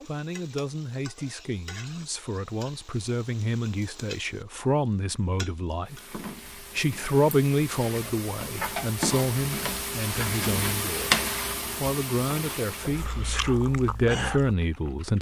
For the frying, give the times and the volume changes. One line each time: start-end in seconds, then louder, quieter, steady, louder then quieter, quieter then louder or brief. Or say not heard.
0.0-13.1 louder.